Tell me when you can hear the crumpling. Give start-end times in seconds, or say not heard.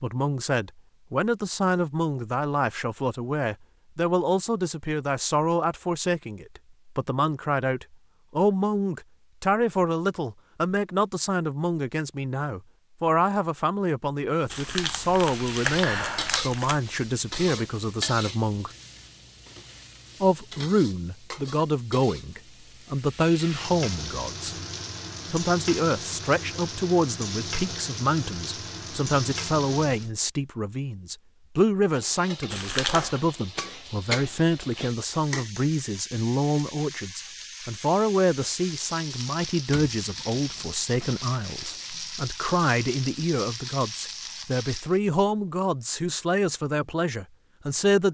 14.5-16.8, 32.5-33.2.